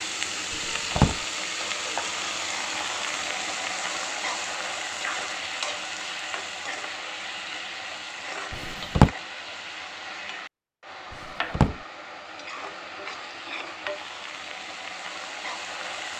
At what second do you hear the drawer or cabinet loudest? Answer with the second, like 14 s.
9 s.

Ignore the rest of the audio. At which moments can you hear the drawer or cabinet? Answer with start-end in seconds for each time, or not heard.
0.5-1.2, 8.5-9.1, 11.1-11.8.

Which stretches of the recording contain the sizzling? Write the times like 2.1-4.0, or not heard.
0.0-16.1.